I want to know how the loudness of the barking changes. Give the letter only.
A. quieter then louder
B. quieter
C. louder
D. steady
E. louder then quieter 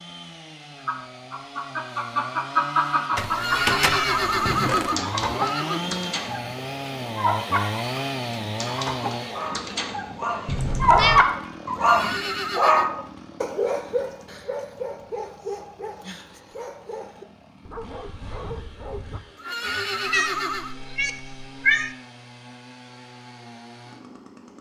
E.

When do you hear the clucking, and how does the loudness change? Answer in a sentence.
The clucking can be heard from 0.8 to 12.2 s, getting quieter then louder.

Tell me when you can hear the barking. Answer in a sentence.
The barking can be heard from 9.2 to 19.2 s.